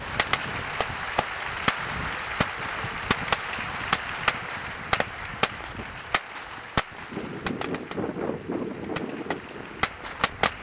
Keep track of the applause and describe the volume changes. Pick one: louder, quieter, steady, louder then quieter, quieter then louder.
quieter.